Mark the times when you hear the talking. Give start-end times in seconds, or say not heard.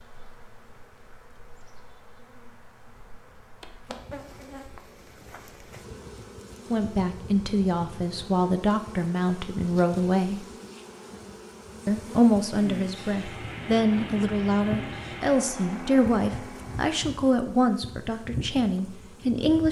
6.7-10.4, 11.8-19.6.